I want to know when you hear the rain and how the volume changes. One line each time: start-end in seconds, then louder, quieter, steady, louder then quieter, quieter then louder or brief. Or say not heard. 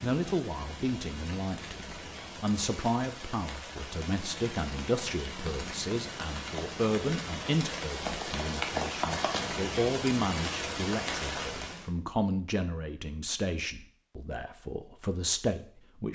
0.0-11.9 louder.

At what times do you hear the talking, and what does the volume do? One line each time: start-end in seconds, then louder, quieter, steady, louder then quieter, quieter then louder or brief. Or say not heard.
0.0-16.1 steady.